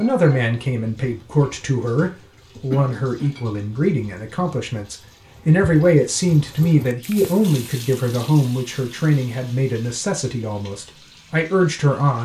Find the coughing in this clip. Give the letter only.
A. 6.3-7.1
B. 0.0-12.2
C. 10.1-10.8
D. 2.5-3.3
D.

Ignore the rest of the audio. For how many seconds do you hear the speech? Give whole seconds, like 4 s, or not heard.
12 s.